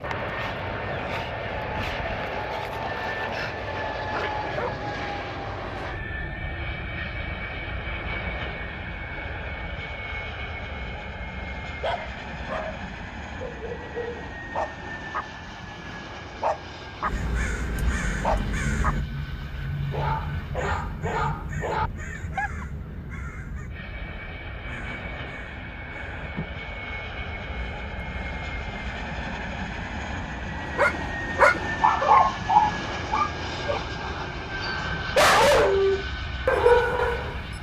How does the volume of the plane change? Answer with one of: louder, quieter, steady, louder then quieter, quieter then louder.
quieter then louder.